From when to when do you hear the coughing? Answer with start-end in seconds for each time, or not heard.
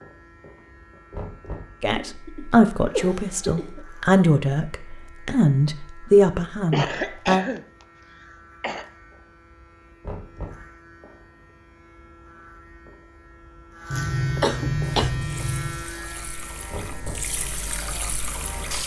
1.9-3.9, 6.7-8.8, 13.9-15.8.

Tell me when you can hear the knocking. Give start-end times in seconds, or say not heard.
1.1-1.8, 10.0-10.7, 16.7-17.4.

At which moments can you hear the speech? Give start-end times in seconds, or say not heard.
1.8-7.5.